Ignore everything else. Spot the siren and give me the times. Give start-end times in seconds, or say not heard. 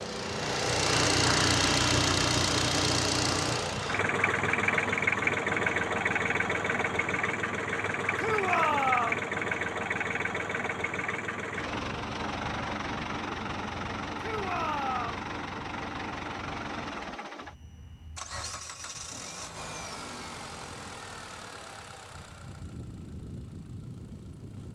not heard.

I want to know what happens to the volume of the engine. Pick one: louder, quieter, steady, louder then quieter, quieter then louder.
quieter.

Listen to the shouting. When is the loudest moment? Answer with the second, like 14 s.
9 s.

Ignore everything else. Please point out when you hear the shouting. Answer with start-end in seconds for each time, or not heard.
8.2-9.2, 14.2-15.2.